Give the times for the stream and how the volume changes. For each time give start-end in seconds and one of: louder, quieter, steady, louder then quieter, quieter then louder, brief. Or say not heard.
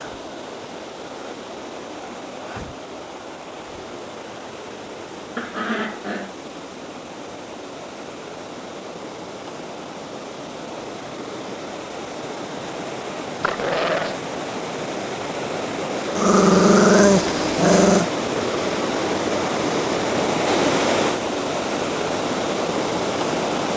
0.0-23.7 louder.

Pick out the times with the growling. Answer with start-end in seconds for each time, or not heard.
5.3-6.3, 13.4-14.2, 16.1-18.1.